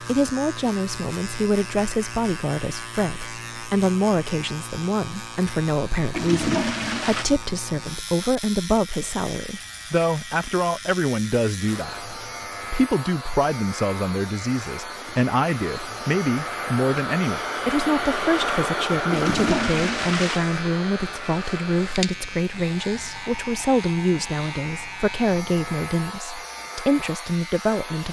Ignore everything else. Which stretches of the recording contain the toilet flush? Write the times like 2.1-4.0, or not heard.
6.1-7.2, 19.1-20.5.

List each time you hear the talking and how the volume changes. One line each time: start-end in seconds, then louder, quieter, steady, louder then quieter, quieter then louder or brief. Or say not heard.
0.0-28.0 steady.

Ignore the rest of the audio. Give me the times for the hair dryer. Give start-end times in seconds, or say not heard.
11.6-28.0.